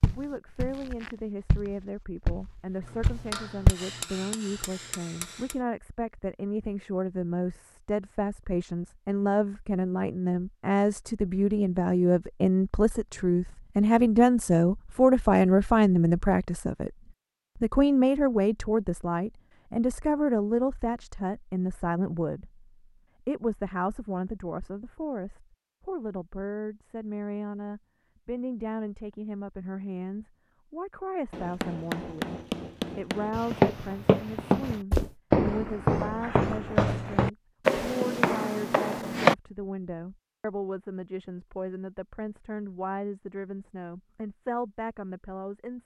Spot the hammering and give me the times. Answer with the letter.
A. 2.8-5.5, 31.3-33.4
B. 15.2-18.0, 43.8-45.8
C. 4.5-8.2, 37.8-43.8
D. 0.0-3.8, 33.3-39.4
A.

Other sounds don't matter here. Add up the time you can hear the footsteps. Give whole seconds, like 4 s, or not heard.
10 s.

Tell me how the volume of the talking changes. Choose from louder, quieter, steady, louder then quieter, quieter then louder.
louder then quieter.